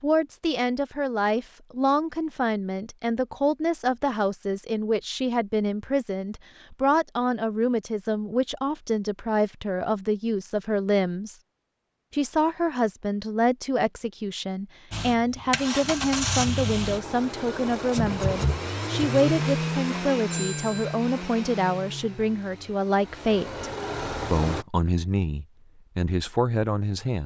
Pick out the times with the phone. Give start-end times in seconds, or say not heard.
20.3-21.0.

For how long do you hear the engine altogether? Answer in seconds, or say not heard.
10 s.